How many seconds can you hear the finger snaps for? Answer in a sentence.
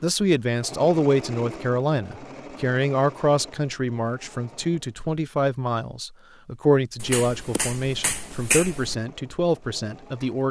You can hear the finger snaps for 2 seconds altogether.